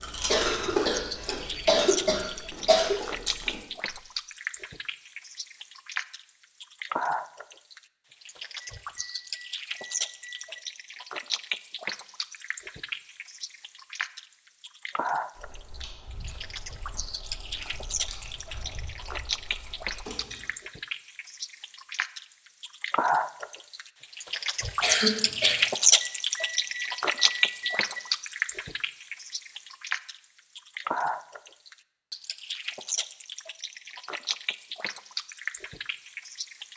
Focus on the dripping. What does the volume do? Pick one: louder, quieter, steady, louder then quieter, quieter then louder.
louder then quieter.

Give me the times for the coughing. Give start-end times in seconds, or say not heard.
0.2-3.0, 24.8-25.7.